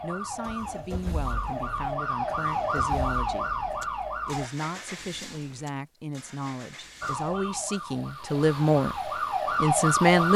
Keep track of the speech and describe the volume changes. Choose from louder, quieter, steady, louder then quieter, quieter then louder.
louder.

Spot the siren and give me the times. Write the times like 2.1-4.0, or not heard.
0.0-4.5, 7.0-10.3.